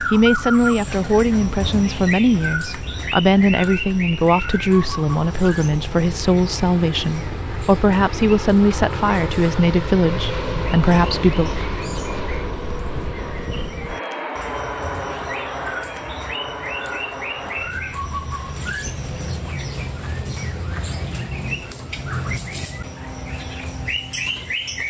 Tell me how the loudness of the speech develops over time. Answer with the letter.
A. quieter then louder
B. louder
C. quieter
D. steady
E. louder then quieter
D.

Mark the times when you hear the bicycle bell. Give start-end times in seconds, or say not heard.
not heard.